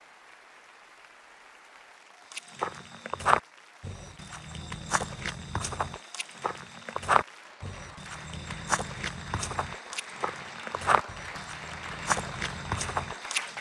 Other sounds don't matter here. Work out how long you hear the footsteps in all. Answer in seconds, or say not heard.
11 s.